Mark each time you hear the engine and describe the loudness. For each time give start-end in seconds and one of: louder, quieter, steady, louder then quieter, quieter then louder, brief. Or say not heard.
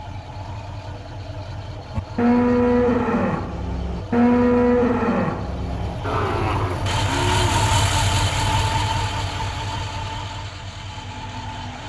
0.0-11.8 louder then quieter.